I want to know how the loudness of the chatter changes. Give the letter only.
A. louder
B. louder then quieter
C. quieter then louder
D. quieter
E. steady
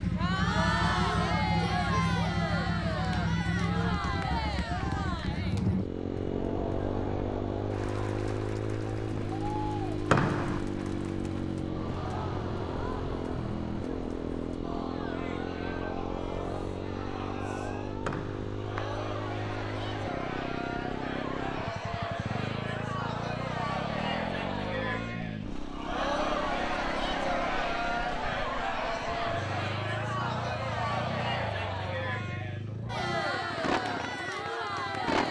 C.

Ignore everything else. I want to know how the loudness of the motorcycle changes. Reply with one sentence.
The volume of the motorcycle goes down.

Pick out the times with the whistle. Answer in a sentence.
You can hear the whistle from 10.1 to 10.7 s and from 18.0 to 18.9 s.